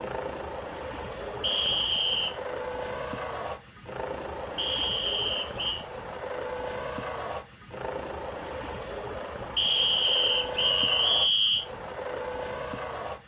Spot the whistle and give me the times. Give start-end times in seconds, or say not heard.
1.4-2.4, 4.5-5.8, 9.6-11.7.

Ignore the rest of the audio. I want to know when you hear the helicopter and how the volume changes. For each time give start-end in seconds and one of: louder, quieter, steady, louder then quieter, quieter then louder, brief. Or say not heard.
0.0-13.2 steady.